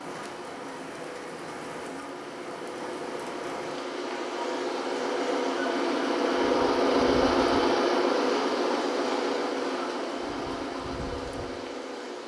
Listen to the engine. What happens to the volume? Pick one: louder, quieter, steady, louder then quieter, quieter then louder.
louder then quieter.